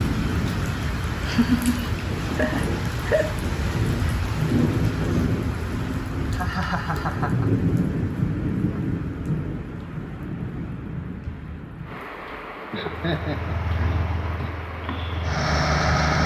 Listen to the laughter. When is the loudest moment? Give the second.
2 s.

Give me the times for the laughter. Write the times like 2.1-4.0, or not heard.
1.2-3.4, 6.3-7.5, 12.7-14.5.